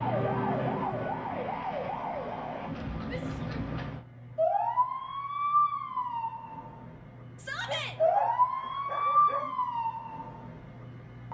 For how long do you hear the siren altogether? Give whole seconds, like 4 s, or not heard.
11 s.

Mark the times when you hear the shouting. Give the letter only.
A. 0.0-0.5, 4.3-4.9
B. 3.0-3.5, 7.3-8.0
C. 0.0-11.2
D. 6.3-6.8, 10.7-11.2
B.